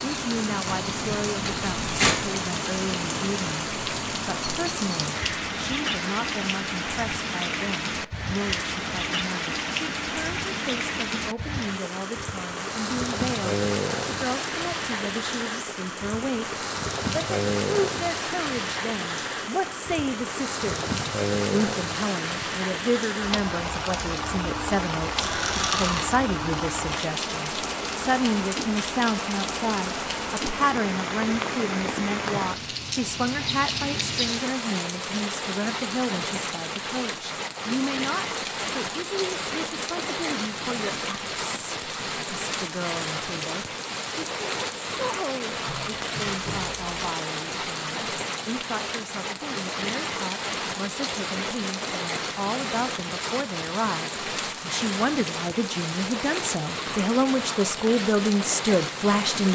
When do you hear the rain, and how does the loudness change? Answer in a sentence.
The rain can be heard from 0.0 to 59.5 s, at a steady volume.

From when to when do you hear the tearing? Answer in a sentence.
You can hear the tearing from 0.7 to 2.1 s, from 25.2 to 26.1 s and from 45.6 to 47.0 s.